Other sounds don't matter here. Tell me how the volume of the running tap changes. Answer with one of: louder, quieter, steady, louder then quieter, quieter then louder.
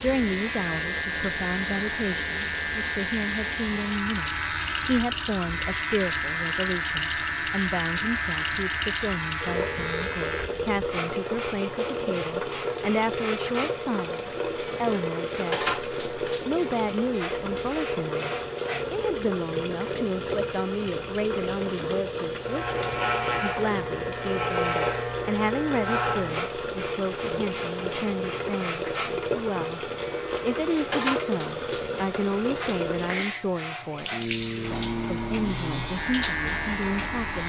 steady.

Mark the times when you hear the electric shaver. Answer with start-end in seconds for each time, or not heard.
0.0-37.4.